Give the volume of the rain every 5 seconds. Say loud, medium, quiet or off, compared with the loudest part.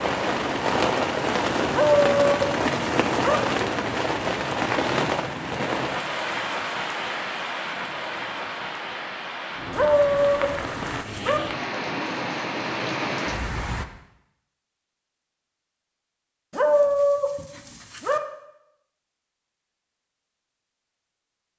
loud, medium, medium, off, off.